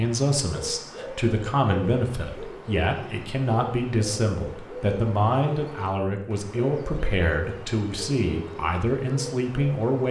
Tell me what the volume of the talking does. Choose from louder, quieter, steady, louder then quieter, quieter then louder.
steady.